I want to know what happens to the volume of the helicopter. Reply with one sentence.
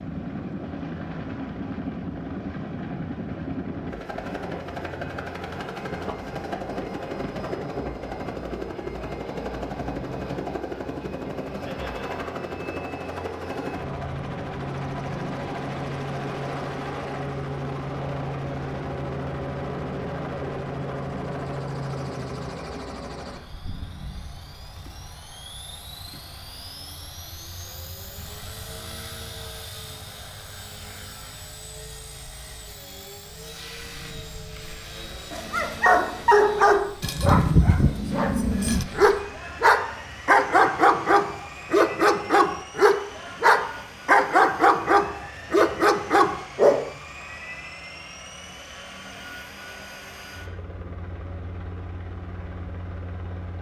The volume of the helicopter goes down.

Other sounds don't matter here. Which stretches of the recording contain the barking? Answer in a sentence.
You can hear the barking from 35.3 to 46.9 s.